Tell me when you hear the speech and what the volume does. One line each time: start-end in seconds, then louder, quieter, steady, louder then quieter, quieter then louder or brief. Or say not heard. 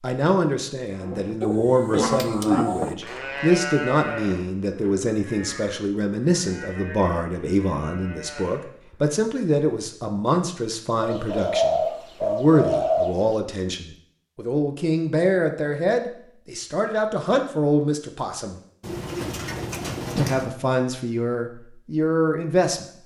0.0-18.6 steady
20.1-22.9 brief.